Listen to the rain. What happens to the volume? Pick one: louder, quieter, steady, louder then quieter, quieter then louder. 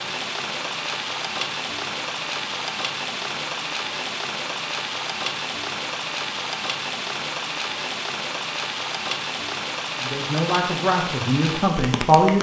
steady.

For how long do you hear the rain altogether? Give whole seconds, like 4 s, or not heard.
12 s.